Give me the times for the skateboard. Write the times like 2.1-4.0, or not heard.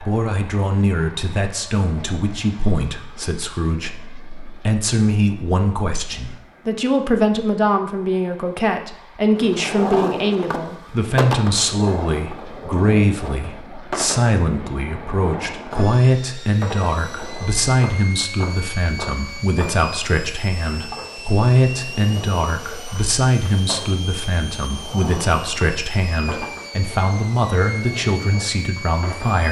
9.3-29.4.